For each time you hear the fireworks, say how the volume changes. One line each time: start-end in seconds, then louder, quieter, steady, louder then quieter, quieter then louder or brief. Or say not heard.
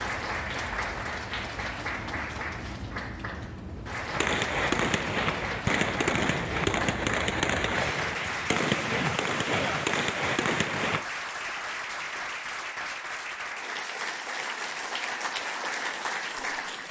4.0-11.1 steady.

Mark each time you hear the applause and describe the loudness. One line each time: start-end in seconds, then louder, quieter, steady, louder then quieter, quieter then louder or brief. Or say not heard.
0.0-16.8 steady.